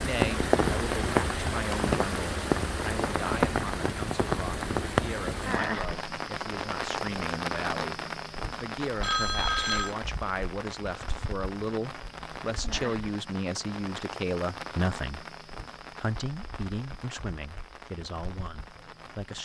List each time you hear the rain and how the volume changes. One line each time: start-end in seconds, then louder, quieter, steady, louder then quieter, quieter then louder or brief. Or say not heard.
0.0-19.4 quieter.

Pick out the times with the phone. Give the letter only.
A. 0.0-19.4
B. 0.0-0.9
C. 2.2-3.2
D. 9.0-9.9
D.